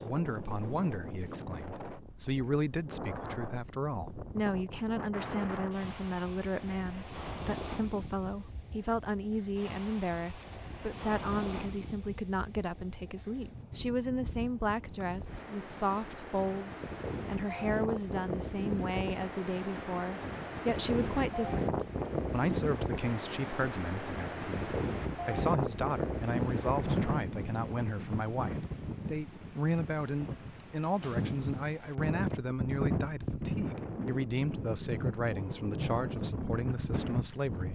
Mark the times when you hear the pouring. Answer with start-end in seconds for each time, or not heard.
not heard.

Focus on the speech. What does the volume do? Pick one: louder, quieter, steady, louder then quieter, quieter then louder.
steady.